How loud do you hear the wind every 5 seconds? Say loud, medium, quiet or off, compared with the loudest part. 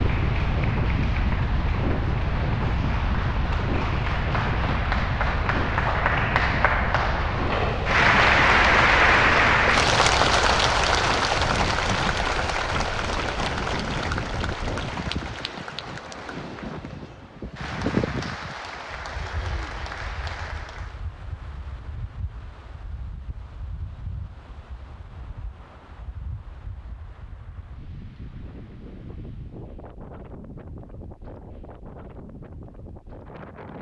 loud, loud, medium, medium, quiet, quiet, quiet.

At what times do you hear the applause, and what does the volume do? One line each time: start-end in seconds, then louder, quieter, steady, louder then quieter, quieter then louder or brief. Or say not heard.
0.0-21.1 louder then quieter.